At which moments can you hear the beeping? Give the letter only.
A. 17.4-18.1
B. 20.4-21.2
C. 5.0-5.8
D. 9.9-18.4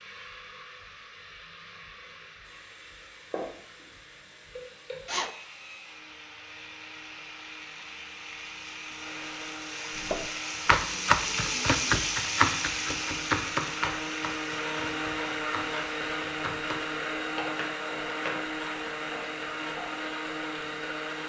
C.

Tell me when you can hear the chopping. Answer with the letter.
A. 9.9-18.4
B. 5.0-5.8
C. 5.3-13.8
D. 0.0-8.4
A.